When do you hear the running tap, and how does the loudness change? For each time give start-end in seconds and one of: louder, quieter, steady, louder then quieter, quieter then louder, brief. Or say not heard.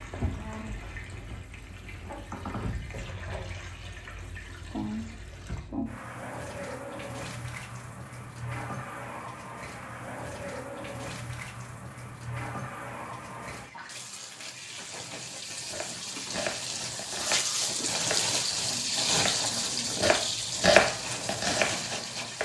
0.0-22.4 louder.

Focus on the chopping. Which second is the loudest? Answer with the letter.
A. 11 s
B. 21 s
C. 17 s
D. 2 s
B.